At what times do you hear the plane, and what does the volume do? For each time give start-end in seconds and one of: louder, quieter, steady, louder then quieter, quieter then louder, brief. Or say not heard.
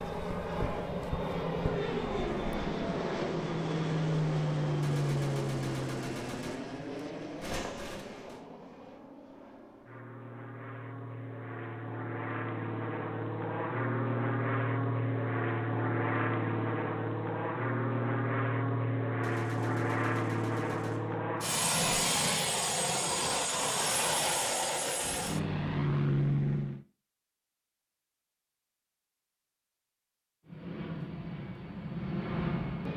0.0-26.9 quieter then louder
30.4-32.9 brief.